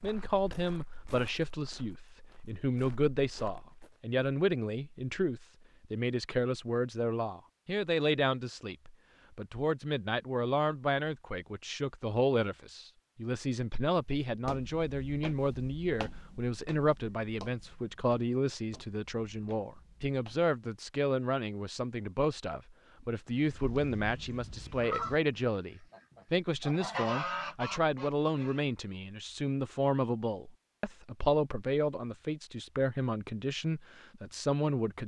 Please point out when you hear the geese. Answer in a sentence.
You can hear the geese from 23.4 to 28.6 s.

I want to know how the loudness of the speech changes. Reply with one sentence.
The volume of the speech stays about the same.